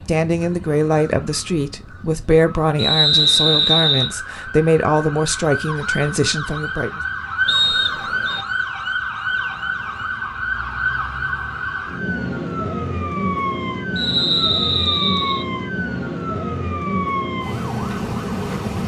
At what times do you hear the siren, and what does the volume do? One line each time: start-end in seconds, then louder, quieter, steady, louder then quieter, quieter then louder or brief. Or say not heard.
0.0-18.8 louder.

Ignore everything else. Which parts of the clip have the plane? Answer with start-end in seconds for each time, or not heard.
not heard.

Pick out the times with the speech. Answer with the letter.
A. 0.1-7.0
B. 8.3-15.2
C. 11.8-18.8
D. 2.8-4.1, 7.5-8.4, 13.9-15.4
A.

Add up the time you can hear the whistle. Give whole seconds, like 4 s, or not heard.
4 s.